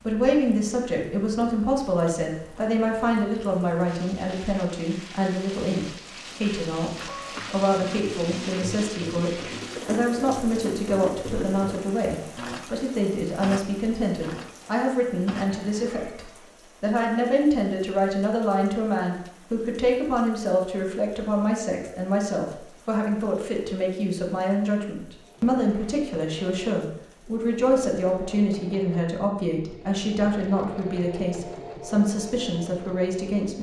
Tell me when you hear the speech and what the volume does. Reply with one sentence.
The speech can be heard from 0.0 to 33.5 s, at a steady volume.